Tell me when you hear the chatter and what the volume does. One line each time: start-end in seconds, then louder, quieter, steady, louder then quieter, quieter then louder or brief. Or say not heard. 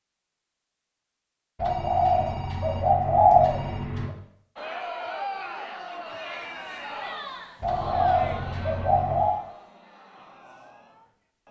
4.5-11.4 quieter.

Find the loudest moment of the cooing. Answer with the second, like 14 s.
3 s.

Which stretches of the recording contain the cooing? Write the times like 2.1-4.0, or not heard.
1.6-4.2, 7.6-9.4.